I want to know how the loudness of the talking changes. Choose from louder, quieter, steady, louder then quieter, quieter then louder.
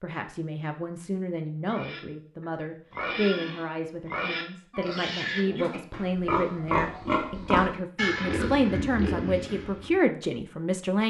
louder.